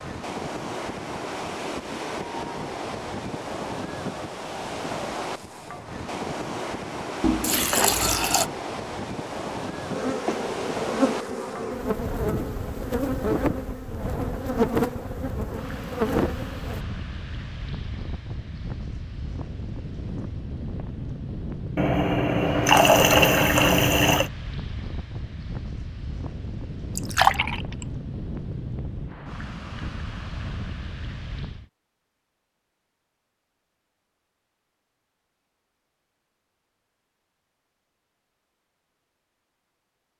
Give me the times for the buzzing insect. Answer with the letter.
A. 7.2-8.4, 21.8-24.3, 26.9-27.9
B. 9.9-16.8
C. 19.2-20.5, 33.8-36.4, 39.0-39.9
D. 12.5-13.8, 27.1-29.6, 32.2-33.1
B.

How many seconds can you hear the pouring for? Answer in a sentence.
The pouring can be heard for 5 seconds in total.